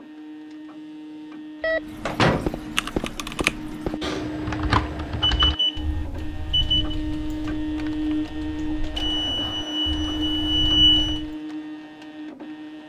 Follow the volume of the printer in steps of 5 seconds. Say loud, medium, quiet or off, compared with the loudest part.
medium, loud, loud.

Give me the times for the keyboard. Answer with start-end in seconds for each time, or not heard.
1.9-11.3.